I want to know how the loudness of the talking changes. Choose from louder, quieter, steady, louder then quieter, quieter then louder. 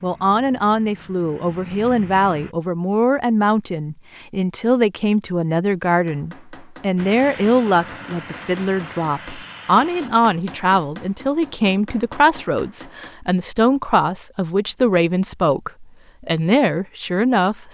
steady.